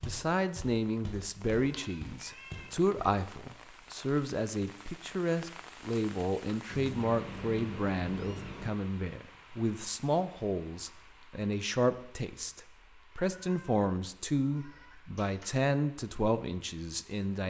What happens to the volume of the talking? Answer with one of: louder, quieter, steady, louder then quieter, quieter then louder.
steady.